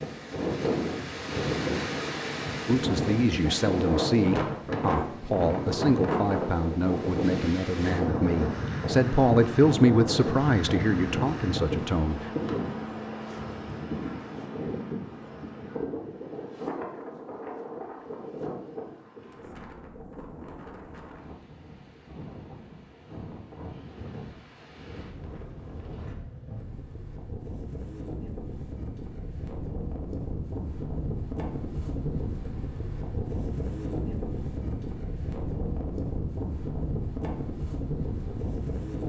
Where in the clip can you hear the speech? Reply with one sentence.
You can hear the speech from 2.6 to 12.2 s.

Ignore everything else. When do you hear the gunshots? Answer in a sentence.
The gunshots can't be heard in this clip.